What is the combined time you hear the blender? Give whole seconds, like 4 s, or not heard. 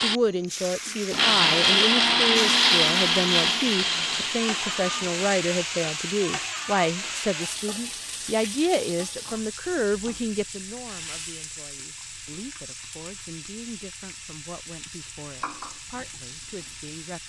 5 s.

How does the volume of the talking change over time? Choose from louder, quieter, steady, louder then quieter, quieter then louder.
quieter.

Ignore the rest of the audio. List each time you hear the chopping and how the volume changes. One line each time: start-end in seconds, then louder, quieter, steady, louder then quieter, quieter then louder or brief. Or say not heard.
not heard.